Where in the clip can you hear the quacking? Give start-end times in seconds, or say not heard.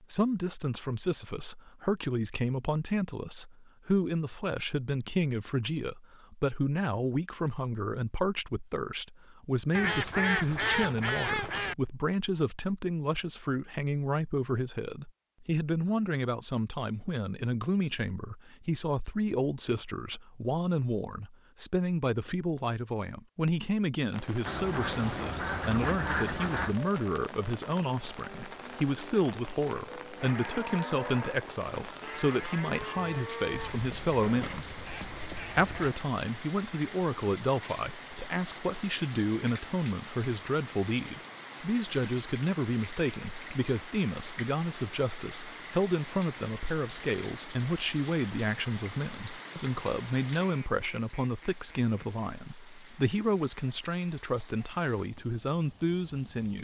9.7-11.8, 24.4-26.8, 33.5-35.9, 50.4-52.3.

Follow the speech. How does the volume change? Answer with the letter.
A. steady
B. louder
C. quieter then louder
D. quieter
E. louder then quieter
A.